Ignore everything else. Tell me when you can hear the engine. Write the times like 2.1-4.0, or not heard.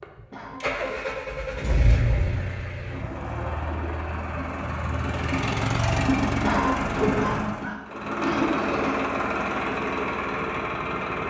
0.0-11.2.